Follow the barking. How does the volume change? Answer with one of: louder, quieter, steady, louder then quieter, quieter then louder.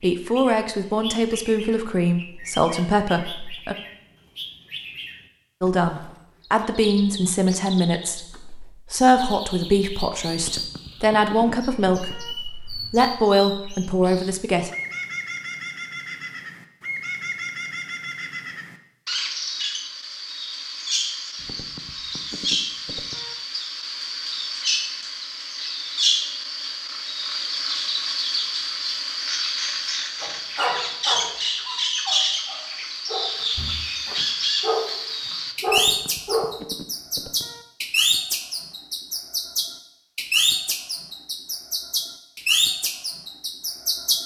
quieter then louder.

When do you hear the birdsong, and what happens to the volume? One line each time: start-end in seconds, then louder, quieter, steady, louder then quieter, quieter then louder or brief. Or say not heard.
0.1-44.2 louder.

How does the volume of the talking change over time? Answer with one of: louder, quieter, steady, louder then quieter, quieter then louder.
steady.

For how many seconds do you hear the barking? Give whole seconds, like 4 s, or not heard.
6 s.